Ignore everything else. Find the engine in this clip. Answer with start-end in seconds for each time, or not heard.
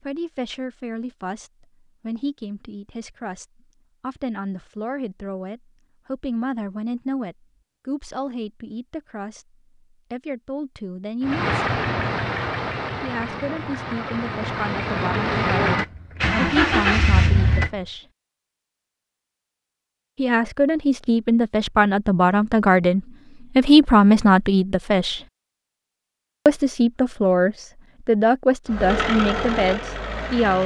11.2-17.8, 28.6-30.6.